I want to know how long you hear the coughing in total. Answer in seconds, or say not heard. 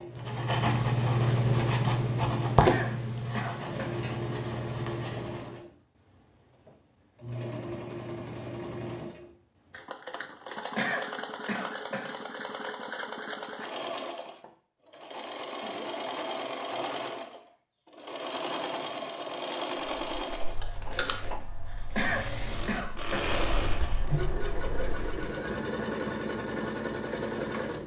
4 s.